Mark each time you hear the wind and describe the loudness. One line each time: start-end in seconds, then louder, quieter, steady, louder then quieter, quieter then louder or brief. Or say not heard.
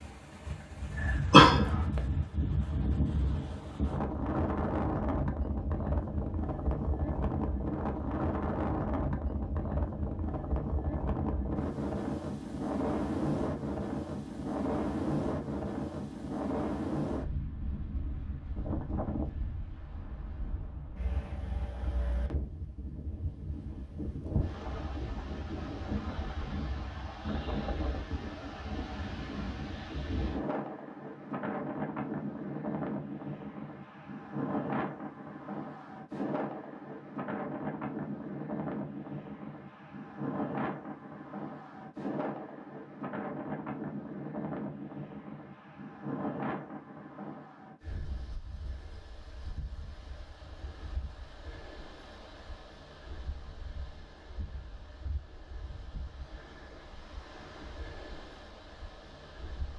0.0-59.7 quieter.